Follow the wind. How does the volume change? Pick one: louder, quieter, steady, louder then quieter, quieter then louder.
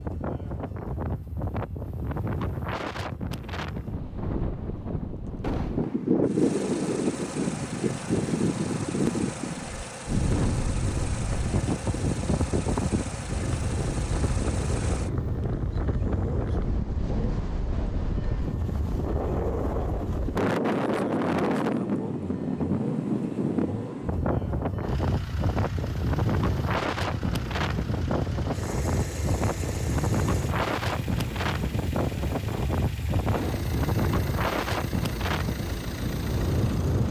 steady.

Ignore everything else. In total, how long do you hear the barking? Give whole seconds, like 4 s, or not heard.
not heard.